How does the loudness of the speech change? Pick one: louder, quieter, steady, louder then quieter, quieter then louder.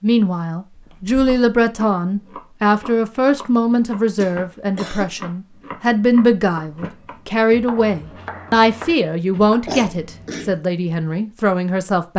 steady.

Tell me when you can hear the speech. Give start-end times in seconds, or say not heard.
0.0-12.1.